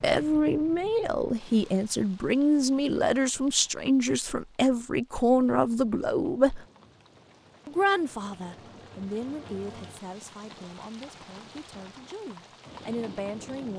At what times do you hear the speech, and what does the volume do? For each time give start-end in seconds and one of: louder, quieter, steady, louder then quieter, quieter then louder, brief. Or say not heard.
0.0-6.7 steady
7.7-13.7 quieter then louder.